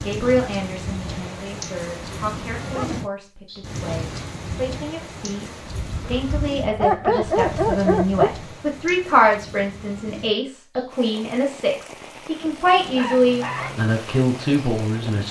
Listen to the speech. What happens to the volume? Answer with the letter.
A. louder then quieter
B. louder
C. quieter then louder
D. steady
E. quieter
B.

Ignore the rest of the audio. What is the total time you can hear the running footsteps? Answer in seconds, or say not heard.
not heard.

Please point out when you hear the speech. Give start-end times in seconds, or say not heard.
0.1-15.2.